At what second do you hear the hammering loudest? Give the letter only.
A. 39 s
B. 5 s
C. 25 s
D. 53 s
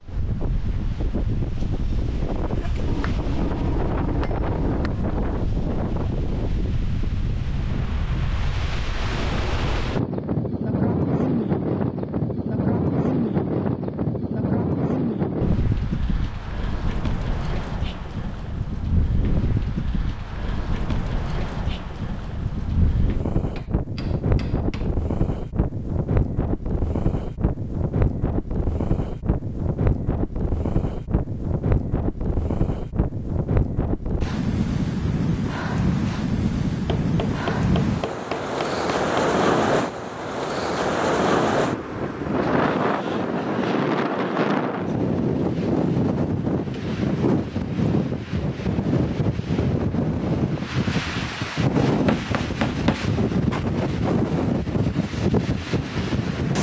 D.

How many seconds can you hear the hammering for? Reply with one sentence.
The hammering can be heard for 8 seconds in total.